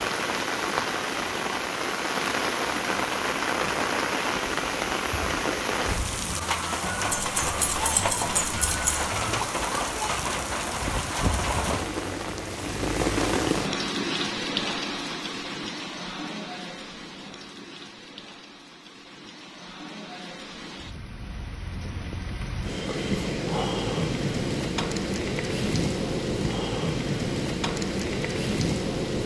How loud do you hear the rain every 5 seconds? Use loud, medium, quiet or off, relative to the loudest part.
loud, loud, loud, medium, loud, loud.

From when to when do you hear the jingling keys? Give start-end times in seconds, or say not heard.
7.1-9.1.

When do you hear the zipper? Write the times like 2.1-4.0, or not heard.
not heard.